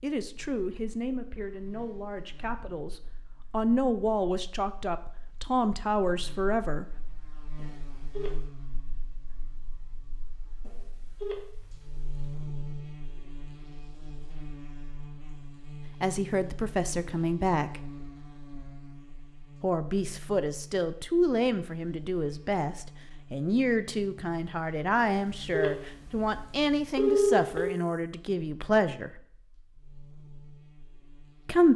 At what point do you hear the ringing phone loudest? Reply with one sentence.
The loudest moment of the ringing phone is at 27 seconds.